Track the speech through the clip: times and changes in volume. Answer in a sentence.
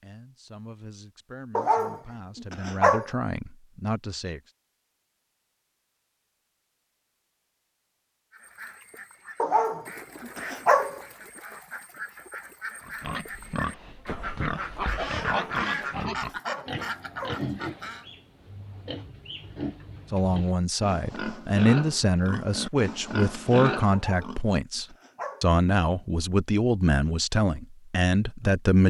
The speech can be heard from 0.0 to 4.5 s, getting louder; and from 20.1 to 28.8 s, at a steady volume.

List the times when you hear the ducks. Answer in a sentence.
The ducks can be heard from 8.3 to 18.1 s.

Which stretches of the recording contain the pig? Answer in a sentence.
The pig can be heard from 12.8 to 24.4 s.